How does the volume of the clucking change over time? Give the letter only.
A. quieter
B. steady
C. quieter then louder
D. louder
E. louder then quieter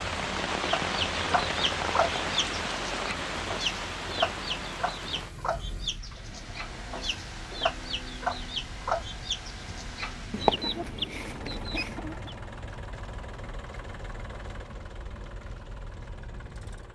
C.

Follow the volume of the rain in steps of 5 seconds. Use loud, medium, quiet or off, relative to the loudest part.
loud, quiet, quiet, quiet.